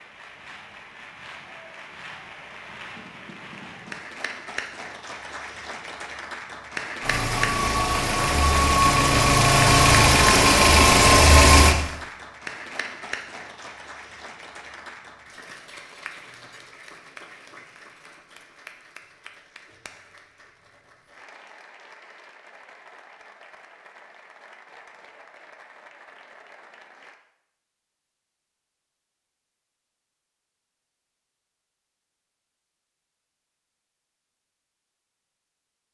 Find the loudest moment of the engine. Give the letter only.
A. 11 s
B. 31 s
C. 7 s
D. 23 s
A.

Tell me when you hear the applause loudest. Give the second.
7 s.